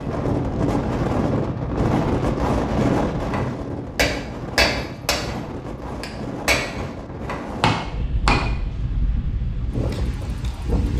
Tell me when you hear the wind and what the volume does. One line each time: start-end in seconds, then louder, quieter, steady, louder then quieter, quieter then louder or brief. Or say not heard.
0.0-10.9 quieter.